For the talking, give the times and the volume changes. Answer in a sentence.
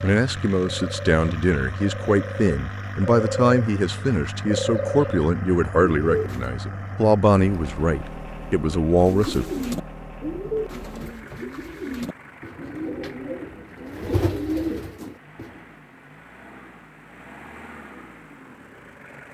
The talking can be heard from 0.0 to 9.4 s, at a steady volume.